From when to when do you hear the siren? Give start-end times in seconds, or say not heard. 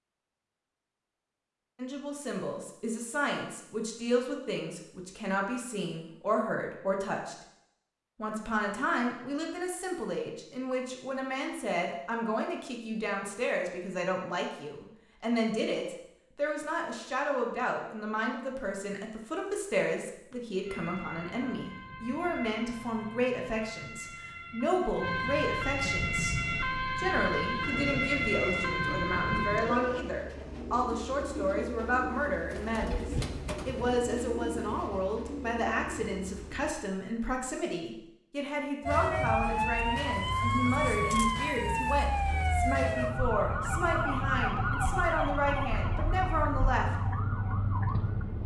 20.6-30.1, 38.9-48.4.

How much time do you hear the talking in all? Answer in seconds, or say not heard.
44 s.